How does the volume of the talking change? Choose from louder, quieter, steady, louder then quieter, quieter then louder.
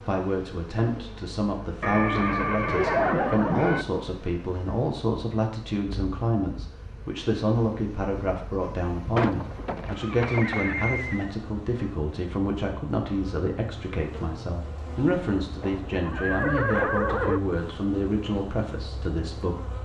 steady.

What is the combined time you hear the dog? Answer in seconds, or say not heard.
not heard.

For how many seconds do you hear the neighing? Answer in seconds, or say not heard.
6 s.